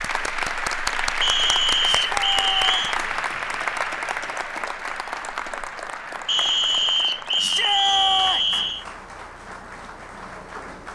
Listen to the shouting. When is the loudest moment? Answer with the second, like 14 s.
8 s.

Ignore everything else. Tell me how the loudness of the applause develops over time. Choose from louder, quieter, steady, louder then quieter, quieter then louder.
quieter.